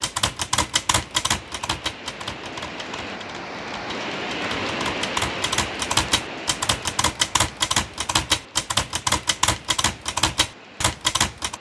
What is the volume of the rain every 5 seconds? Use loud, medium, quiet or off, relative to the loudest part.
loud, loud, quiet.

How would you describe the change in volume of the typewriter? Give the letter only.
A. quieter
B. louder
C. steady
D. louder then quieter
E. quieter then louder
E.